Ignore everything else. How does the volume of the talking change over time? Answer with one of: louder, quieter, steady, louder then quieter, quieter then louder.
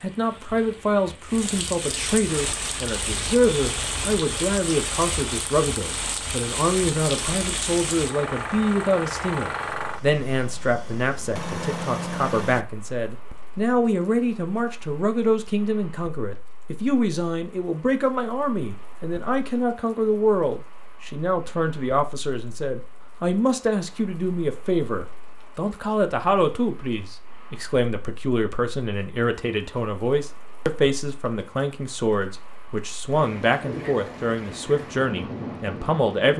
steady.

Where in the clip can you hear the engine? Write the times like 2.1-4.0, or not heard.
2.4-12.7.